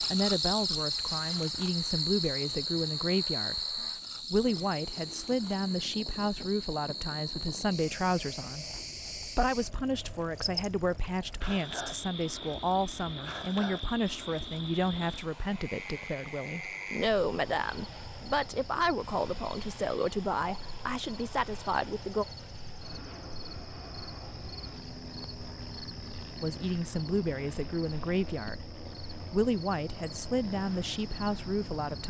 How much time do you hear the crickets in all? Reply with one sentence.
The crickets can be heard for 32 seconds in total.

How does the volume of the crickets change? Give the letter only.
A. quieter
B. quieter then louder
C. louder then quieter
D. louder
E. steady
A.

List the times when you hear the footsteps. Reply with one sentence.
You can't hear the footsteps here.